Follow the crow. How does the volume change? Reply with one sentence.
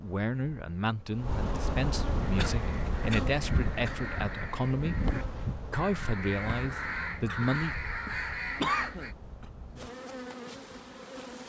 The loudness of the crow goes up.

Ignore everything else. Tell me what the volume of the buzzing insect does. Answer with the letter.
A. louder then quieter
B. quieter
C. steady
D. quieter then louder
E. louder
B.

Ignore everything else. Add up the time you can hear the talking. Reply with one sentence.
You can hear the talking for 7 seconds altogether.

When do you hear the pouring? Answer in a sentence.
You can't hear the pouring here.